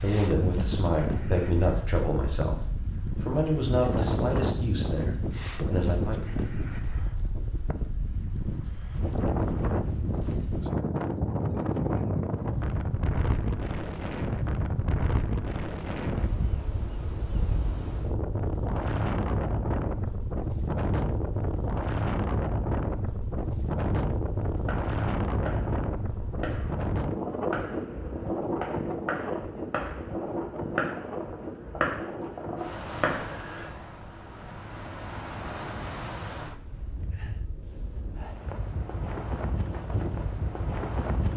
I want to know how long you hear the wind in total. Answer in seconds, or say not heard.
41 s.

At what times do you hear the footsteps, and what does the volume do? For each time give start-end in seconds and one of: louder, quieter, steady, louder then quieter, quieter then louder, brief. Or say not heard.
not heard.